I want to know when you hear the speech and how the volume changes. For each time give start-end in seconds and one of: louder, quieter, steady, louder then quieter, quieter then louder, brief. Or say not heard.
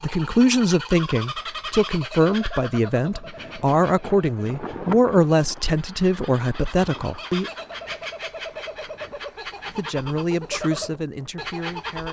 0.0-7.5 steady
9.8-12.0 brief.